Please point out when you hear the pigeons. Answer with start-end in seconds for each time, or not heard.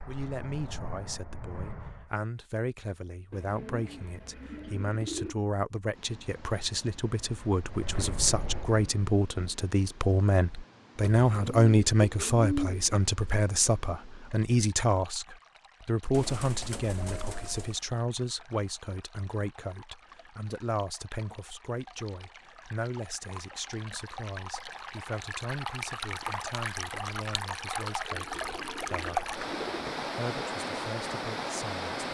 3.3-5.3, 11.2-12.8, 16.1-17.8, 28.1-29.9.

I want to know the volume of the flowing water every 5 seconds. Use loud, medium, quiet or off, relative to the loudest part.
off, quiet, quiet, quiet, quiet, loud, loud.